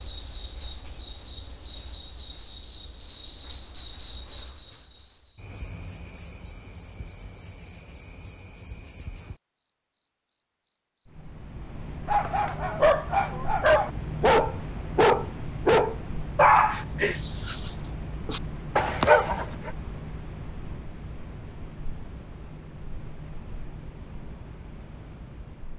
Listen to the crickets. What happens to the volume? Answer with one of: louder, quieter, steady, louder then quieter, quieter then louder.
quieter.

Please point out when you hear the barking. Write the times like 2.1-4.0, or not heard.
12.1-19.7.